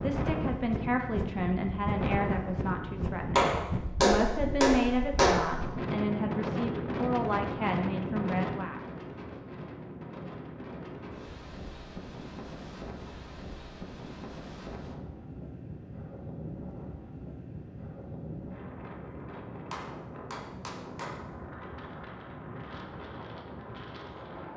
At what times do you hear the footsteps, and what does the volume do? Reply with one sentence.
The footsteps can't be heard in this clip.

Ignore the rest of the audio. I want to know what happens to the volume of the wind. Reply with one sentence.
The volume of the wind goes down.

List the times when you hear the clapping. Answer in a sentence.
You can hear the clapping from 3.4 to 5.3 s and from 19.7 to 21.2 s.